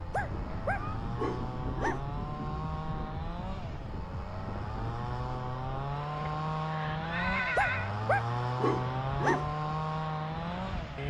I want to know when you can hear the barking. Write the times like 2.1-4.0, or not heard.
0.1-2.0, 7.5-9.4.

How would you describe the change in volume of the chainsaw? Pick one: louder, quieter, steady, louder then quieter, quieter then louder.
louder.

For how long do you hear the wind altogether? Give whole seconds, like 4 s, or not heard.
11 s.